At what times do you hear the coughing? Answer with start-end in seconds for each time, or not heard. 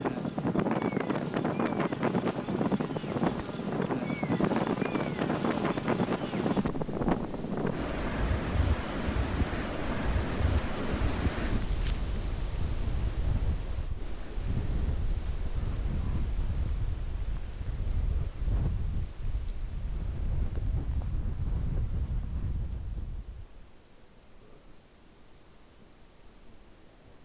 not heard.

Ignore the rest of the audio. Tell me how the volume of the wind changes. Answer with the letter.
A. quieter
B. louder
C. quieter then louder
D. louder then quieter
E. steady
A.